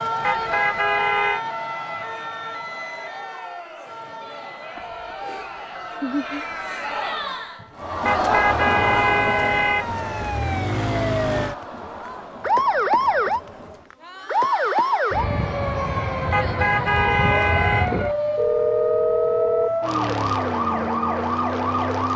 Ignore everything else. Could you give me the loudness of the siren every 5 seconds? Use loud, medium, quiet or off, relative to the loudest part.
medium, quiet, loud, loud, loud.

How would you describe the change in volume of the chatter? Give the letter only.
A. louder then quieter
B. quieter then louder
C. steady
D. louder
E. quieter
A.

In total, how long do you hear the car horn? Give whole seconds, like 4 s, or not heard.
5 s.